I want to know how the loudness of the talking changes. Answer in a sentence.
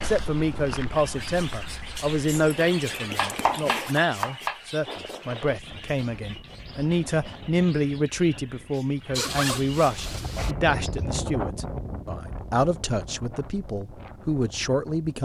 The volume of the talking stays about the same.